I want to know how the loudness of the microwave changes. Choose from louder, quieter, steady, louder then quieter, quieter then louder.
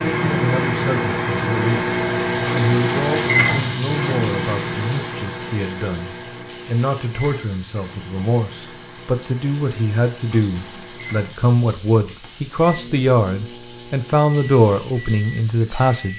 quieter.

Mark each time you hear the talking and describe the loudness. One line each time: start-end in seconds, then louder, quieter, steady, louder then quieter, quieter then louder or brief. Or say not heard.
0.1-1.9 brief
2.5-16.1 louder.